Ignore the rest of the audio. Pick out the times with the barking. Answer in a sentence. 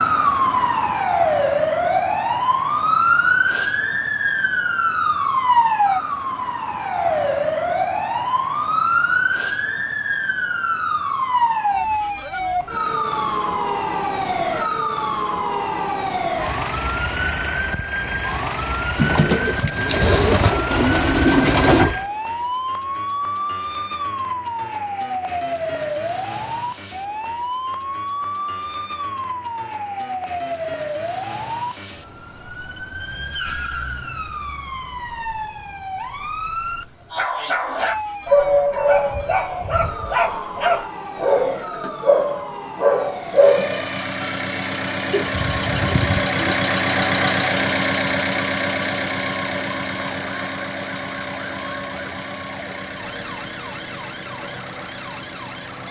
The barking can be heard from 37.1 to 43.9 s.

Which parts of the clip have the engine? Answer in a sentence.
You can hear the engine from 43.1 to 55.8 s.